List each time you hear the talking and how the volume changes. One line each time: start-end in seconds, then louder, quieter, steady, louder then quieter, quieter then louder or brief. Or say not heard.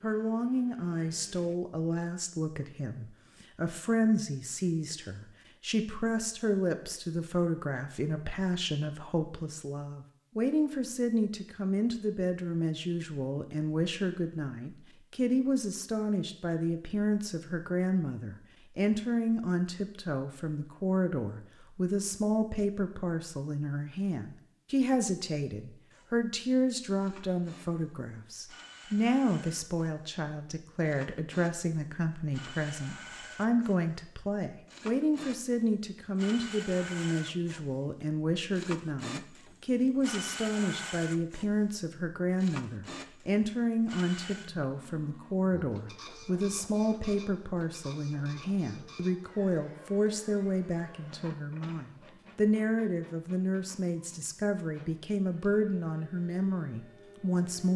0.0-57.7 steady.